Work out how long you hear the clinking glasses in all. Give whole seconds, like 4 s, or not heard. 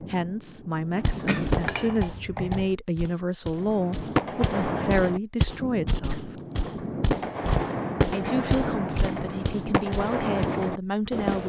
2 s.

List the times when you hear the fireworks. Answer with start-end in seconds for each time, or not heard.
0.0-2.1, 3.5-11.4.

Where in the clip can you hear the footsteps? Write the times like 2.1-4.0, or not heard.
1.0-10.5.